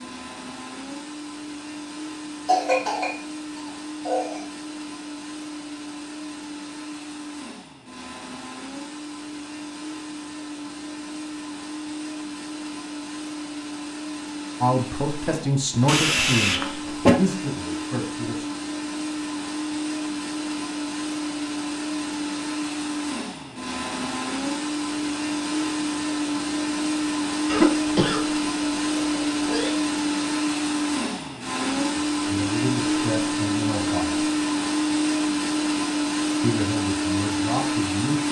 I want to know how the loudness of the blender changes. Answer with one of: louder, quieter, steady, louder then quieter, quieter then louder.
louder.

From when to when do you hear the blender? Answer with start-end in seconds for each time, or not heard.
0.0-38.2.